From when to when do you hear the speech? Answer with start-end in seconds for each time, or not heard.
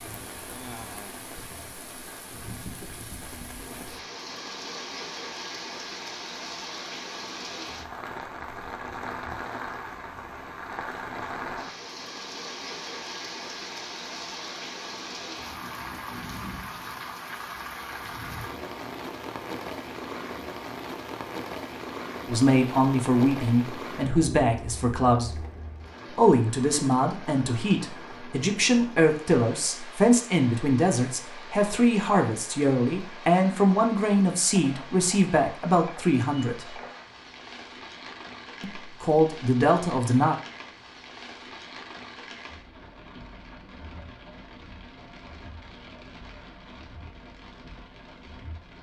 22.2-25.4, 26.1-36.8, 38.6-40.4.